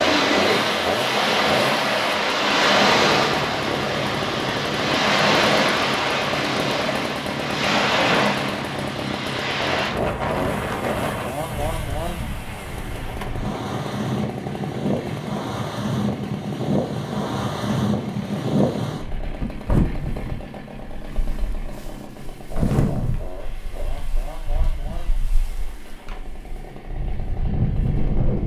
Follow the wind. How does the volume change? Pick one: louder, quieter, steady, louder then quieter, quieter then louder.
quieter.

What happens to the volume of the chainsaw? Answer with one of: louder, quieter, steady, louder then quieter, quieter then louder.
quieter.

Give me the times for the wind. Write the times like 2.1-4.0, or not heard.
0.0-28.4.